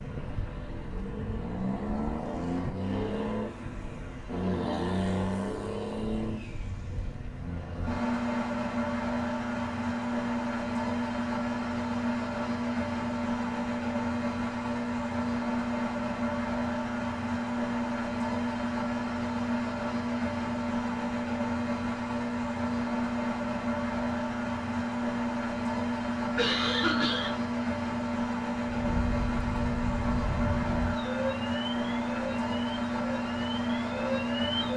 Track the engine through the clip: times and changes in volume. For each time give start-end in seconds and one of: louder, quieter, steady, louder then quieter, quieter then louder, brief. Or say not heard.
0.0-34.7 steady.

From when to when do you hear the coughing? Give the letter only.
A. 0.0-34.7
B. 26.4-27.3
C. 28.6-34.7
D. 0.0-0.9
B.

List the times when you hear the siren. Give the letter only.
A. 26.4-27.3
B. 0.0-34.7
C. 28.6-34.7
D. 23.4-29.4
C.